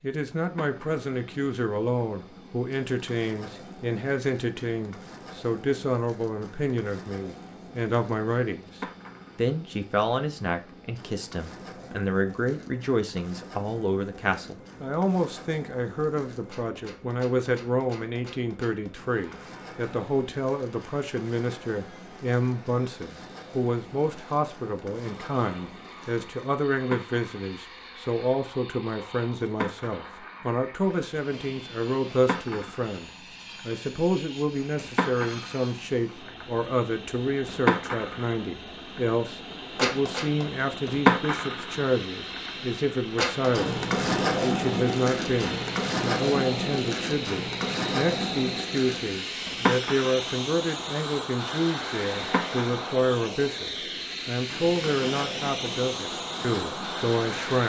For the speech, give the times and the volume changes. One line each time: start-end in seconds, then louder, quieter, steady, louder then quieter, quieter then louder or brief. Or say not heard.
0.0-57.6 steady.